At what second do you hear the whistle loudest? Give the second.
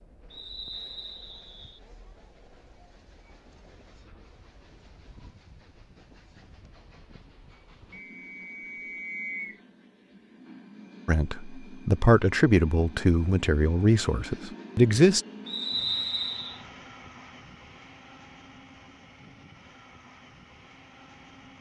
16 s.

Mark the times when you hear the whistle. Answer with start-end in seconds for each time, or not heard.
0.3-1.8, 7.9-9.6, 15.4-16.6.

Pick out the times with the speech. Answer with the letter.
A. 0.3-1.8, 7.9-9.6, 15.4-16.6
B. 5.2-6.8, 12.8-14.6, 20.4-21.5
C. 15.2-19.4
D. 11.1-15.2
D.